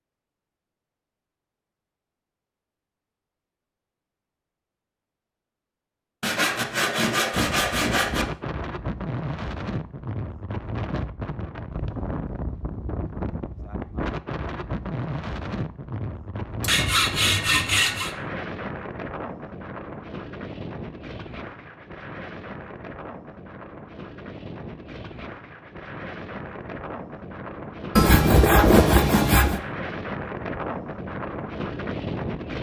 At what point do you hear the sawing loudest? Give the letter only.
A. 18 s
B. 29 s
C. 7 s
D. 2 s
B.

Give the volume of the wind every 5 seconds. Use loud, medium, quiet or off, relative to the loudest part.
off, loud, loud, loud, medium, medium, loud.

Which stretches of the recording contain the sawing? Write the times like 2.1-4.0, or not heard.
6.2-8.2, 16.6-18.1, 27.9-29.6.